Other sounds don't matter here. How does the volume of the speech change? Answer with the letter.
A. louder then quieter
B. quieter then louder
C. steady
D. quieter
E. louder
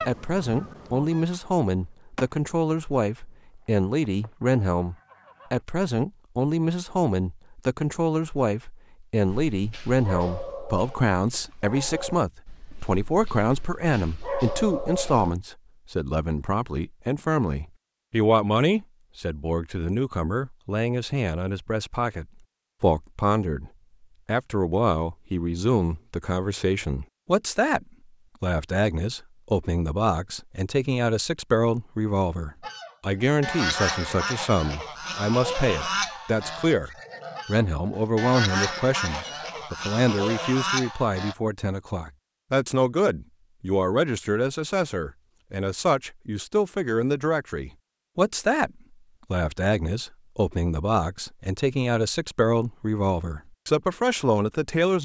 C.